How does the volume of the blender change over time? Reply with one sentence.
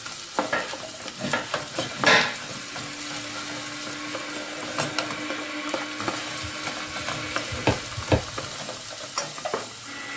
The loudness of the blender goes up, then down.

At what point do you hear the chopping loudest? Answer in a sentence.
The volume of the chopping peaks at 2 seconds.